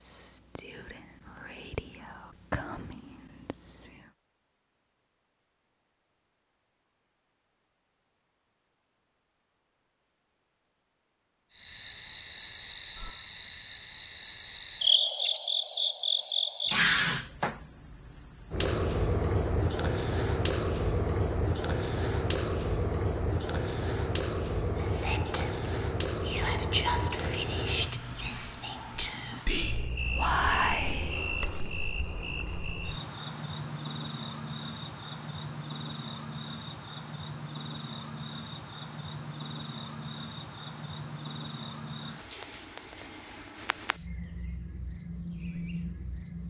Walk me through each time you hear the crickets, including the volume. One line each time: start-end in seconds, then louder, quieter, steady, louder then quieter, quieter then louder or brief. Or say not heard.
11.5-46.4 quieter.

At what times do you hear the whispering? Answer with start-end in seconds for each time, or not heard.
0.0-4.1, 24.8-31.5.